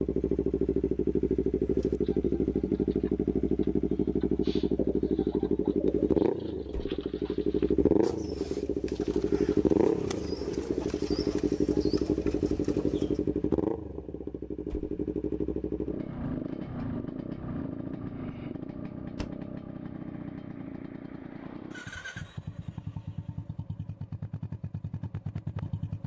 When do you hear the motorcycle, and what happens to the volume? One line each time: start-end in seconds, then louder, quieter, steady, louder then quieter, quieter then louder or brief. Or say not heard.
0.0-26.0 quieter.